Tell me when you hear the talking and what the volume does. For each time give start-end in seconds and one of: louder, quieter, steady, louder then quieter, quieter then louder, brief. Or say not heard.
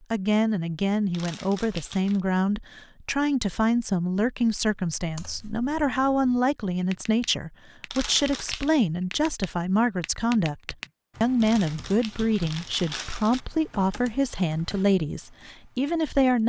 0.1-16.4 steady.